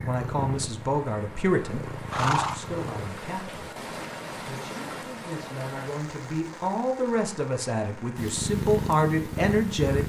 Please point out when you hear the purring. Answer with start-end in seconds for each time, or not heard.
0.0-3.1, 8.2-10.0.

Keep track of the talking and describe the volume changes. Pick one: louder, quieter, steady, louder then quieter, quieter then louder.
quieter then louder.